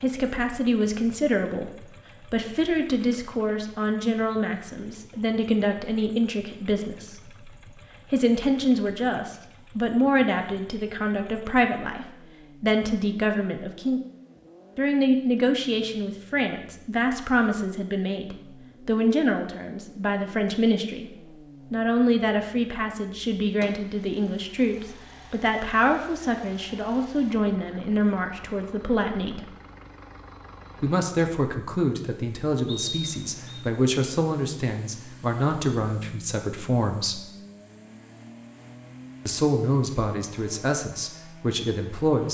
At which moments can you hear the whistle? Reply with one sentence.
The whistle can be heard from 32.6 to 33.6 s.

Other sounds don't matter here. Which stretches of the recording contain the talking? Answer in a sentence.
The talking can be heard from 0.0 to 7.5 s, from 8.1 to 14.0 s, from 14.8 to 21.1 s, from 21.7 to 29.5 s, from 30.8 to 37.2 s and from 39.2 to 42.2 s.